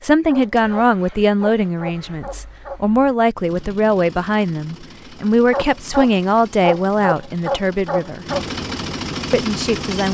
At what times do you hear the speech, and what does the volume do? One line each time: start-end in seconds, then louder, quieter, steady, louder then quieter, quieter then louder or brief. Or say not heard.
0.0-8.2 steady
9.3-10.0 brief.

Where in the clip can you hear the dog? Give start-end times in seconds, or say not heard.
0.2-2.8, 5.5-8.4.